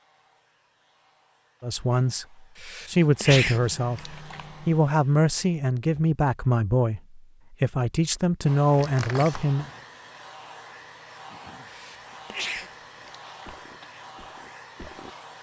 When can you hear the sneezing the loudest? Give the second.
3 s.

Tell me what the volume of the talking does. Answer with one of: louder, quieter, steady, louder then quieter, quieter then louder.
steady.